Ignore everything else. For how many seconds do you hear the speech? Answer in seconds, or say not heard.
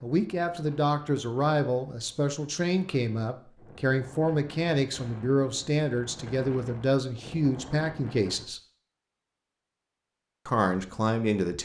10 s.